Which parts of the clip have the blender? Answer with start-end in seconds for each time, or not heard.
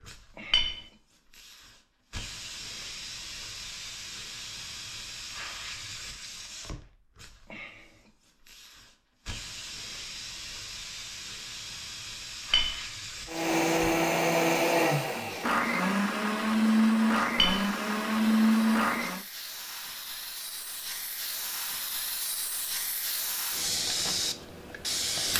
13.2-19.2.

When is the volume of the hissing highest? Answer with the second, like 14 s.
24 s.